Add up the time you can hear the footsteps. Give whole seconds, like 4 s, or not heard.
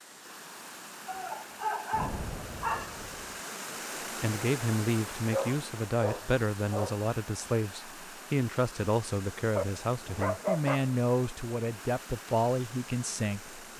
not heard.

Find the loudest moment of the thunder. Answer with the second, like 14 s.
2 s.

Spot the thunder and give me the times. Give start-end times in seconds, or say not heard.
1.9-3.4.